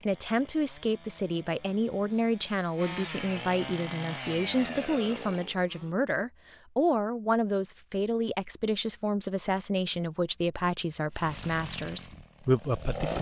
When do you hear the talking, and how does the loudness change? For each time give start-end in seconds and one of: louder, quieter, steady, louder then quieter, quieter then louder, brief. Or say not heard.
0.0-13.1 steady.